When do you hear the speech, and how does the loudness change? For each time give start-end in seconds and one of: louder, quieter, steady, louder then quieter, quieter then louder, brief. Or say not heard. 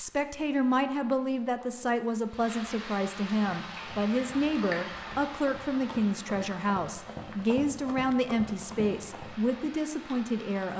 0.0-10.7 steady.